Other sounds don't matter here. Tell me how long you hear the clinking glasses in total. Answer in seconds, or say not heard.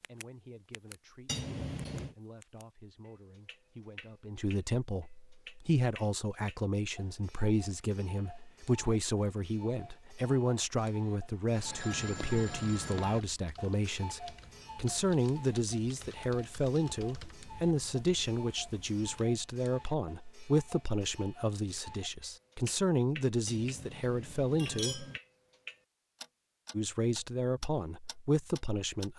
4 s.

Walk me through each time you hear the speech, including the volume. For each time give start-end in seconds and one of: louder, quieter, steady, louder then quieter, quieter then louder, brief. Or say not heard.
0.1-25.1 louder
26.7-29.1 brief.